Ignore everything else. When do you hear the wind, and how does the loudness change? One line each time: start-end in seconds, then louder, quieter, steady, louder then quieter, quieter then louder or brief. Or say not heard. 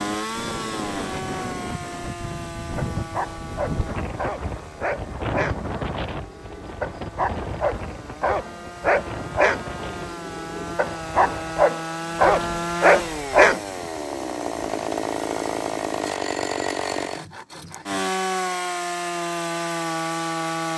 0.0-14.9 quieter.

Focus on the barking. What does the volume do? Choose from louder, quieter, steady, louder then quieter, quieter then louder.
louder.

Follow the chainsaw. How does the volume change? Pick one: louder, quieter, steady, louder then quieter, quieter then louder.
quieter then louder.